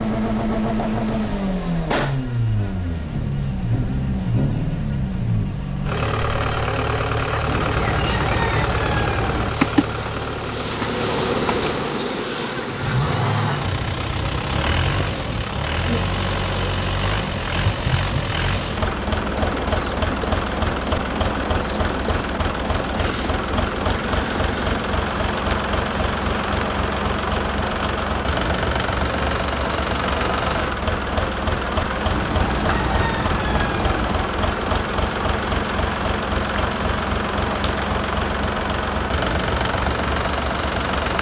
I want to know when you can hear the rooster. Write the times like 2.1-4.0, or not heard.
7.5-9.5, 32.1-34.1.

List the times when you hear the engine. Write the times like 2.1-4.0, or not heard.
0.0-41.1.